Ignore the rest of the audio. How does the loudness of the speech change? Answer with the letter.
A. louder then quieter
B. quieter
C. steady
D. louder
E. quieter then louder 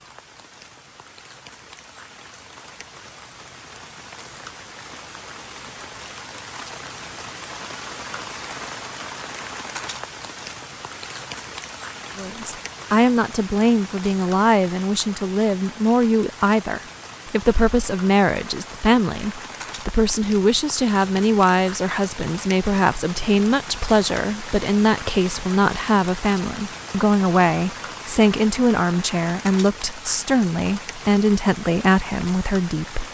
C.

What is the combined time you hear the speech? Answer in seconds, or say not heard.
21 s.